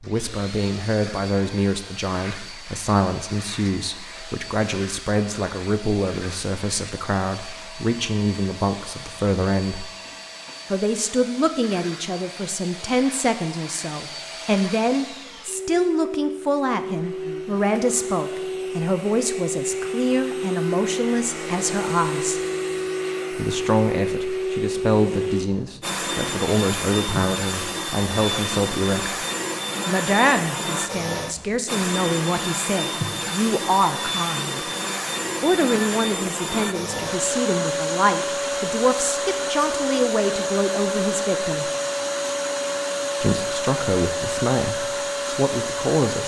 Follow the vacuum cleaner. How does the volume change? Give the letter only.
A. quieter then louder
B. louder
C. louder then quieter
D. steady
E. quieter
B.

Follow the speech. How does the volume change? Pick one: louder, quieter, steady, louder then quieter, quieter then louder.
steady.